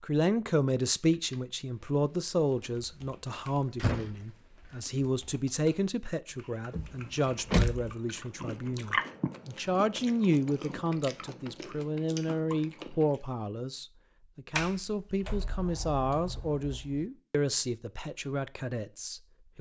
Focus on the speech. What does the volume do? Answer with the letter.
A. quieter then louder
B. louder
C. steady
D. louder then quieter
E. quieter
C.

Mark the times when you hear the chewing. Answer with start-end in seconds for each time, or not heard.
7.2-13.2.